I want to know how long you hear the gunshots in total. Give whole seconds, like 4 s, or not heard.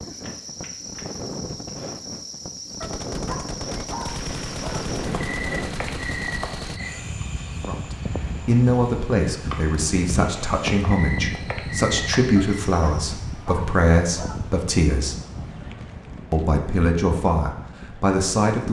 4 s.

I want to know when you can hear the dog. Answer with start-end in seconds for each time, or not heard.
2.8-4.8, 12.3-14.3.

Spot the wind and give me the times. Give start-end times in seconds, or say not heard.
0.0-18.6.